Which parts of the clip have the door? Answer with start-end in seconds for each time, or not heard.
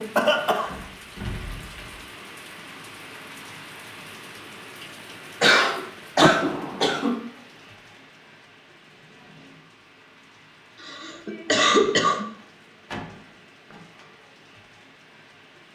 0.7-2.0, 6.2-7.0, 12.3-14.1.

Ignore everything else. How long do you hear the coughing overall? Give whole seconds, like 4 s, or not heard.
4 s.